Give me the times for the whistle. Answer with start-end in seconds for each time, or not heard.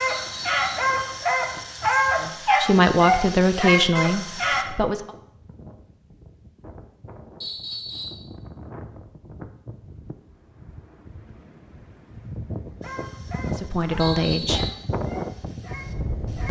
0.1-0.9, 7.4-8.2, 14.0-14.8.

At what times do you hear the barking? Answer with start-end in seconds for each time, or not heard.
0.0-4.7, 12.8-16.4.